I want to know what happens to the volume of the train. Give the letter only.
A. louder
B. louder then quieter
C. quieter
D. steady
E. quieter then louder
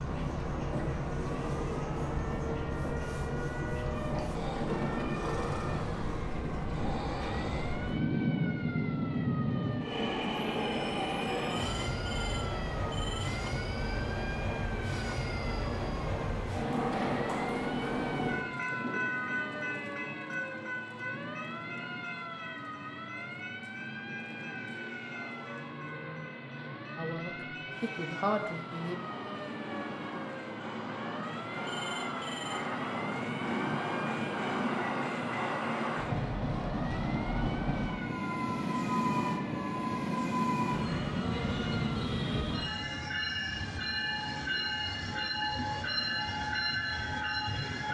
E.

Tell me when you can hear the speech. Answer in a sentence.
You can hear the speech from 26.9 to 28.9 s.